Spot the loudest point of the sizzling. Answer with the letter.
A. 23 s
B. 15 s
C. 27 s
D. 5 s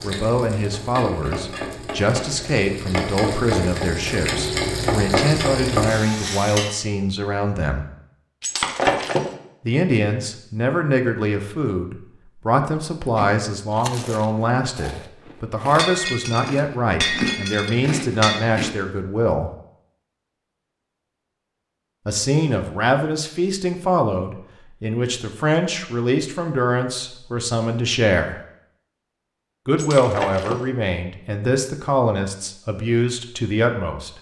D.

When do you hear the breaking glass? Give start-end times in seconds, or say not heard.
8.4-9.3, 15.8-18.4, 29.8-30.6.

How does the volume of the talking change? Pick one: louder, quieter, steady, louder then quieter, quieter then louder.
steady.